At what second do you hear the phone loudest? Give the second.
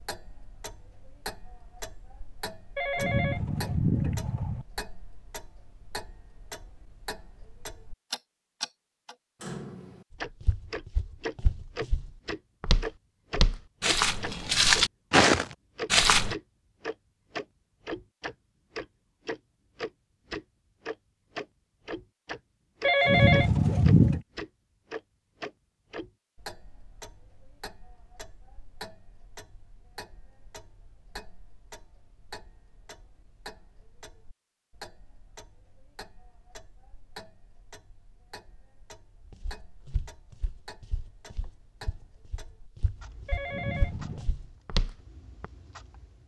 23 s.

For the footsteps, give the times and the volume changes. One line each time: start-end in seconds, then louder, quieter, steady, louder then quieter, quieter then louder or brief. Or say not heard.
10.1-16.4 louder
39.2-45.5 quieter then louder.